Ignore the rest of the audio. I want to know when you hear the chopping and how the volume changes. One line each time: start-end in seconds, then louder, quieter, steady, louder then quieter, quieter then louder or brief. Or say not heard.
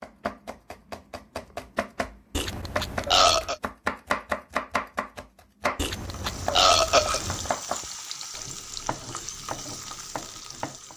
0.0-10.9 louder then quieter.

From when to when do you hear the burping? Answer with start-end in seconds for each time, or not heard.
2.4-3.5, 5.8-7.5.